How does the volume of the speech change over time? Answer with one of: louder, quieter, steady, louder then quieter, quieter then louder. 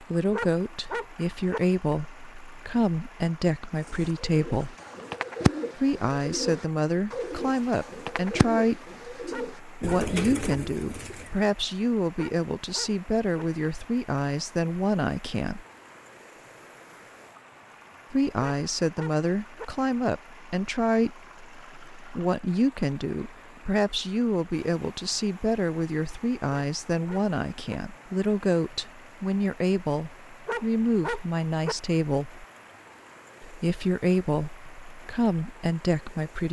steady.